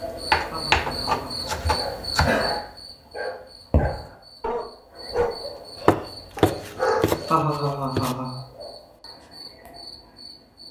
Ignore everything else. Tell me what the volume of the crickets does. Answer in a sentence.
The loudness of the crickets goes down.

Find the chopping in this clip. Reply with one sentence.
You can hear the chopping from 0.3 to 2.3 s and from 5.8 to 8.2 s.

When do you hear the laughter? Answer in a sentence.
The laughter can be heard from 0.5 to 1.6 s and from 7.3 to 8.4 s.